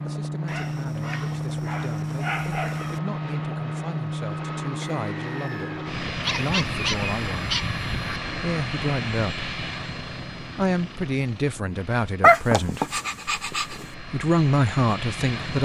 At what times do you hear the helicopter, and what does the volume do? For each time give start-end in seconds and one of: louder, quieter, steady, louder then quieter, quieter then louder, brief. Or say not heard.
0.0-15.6 quieter.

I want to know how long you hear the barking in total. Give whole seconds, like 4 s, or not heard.
6 s.